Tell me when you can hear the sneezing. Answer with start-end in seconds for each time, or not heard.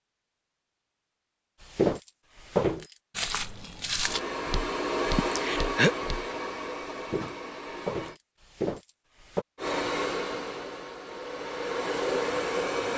5.2-6.0.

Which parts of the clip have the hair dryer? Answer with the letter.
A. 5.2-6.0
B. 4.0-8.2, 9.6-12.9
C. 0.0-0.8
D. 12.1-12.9
B.